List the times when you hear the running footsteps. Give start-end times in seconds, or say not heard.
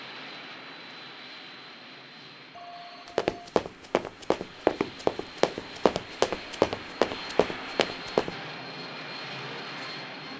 3.0-8.3.